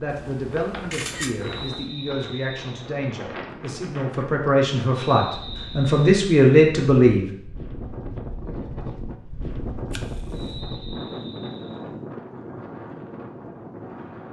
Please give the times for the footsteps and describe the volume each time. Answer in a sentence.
You can't hear the footsteps here.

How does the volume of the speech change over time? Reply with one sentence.
The loudness of the speech goes up.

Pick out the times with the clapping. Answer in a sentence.
You can't hear the clapping here.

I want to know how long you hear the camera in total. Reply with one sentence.
The camera can be heard for 2 seconds in total.